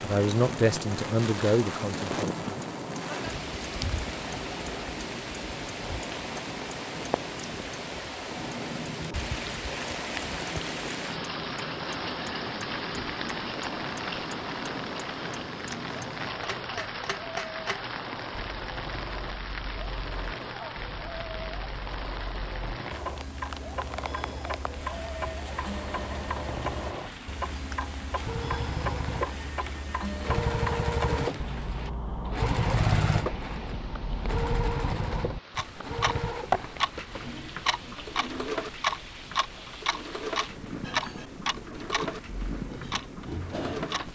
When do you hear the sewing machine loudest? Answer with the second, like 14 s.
33 s.